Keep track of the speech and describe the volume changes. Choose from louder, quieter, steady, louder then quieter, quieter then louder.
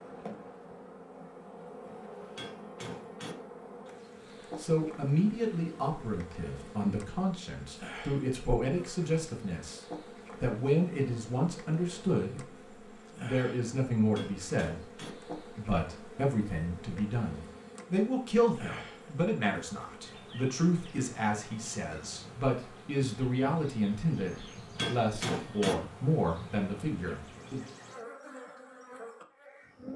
steady.